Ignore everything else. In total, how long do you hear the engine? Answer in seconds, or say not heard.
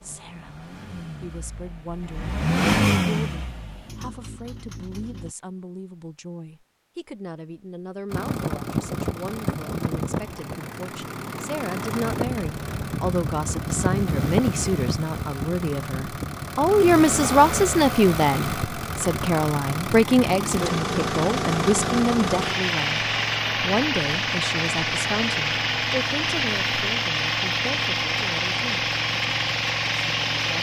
28 s.